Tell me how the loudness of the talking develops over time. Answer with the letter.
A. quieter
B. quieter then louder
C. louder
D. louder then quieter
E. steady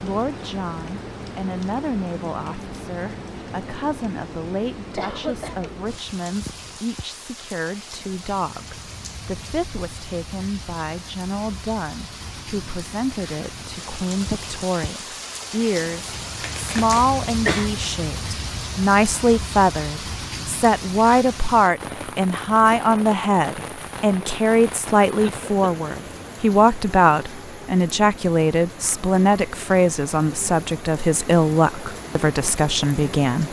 C.